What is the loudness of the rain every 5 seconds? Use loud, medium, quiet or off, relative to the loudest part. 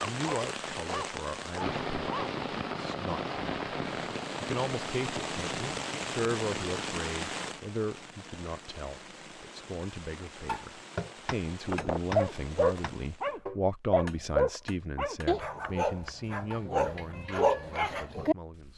loud, loud, quiet, off.